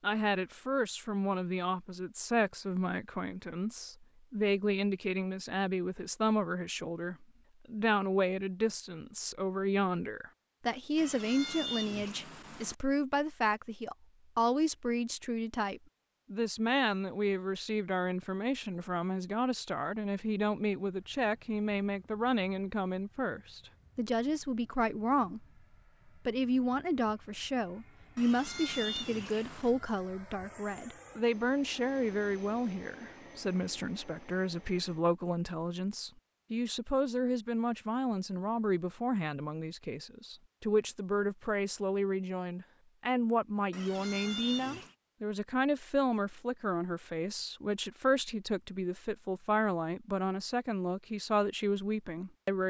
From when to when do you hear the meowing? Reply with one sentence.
You can hear the meowing from 10.9 to 12.8 s, from 28.1 to 29.8 s and from 43.7 to 45.0 s.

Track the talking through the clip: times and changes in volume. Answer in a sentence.
The talking can be heard from 0.0 to 25.4 s, at a steady volume; and from 26.2 to 52.6 s, at a steady volume.